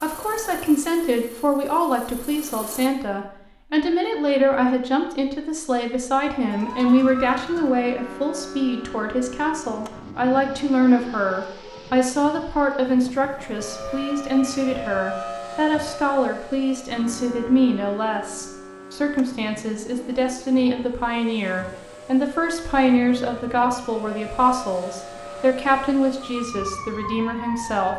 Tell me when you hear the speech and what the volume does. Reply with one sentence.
The speech can be heard from 0.0 to 27.9 s, at a steady volume.